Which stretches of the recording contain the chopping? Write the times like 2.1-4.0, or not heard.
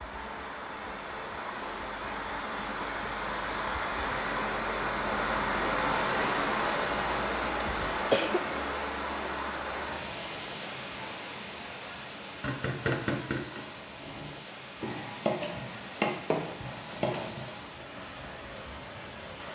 12.4-17.9.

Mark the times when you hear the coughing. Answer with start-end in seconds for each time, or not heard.
7.6-8.4.